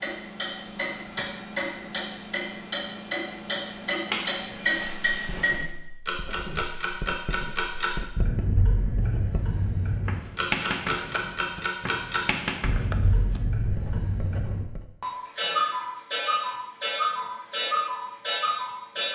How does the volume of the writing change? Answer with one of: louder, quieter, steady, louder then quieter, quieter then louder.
louder then quieter.